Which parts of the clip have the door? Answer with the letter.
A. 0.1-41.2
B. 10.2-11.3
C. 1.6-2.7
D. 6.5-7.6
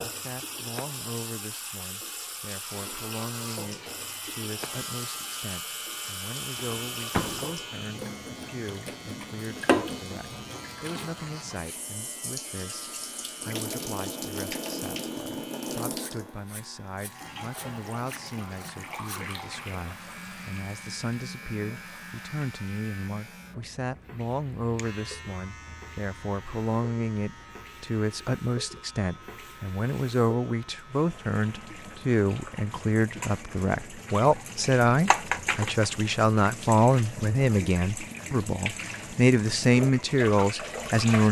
D.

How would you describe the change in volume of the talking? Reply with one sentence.
The volume of the talking goes up.